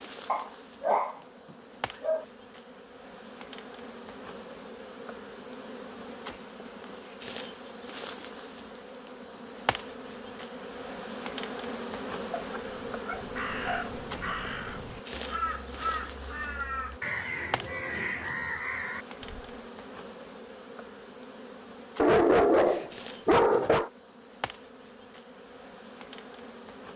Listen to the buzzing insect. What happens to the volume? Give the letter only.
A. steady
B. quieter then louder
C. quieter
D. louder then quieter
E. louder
D.